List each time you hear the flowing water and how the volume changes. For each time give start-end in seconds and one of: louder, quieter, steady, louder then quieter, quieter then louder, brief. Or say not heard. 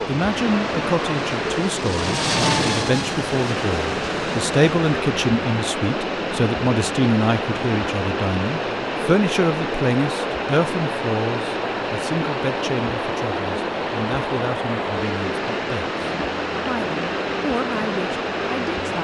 0.0-18.9 steady.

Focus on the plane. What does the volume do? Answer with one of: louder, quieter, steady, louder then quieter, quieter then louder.
louder then quieter.